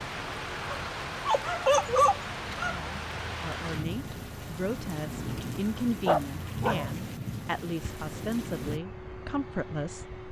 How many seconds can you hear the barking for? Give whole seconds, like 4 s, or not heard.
3 s.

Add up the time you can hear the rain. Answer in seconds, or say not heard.
9 s.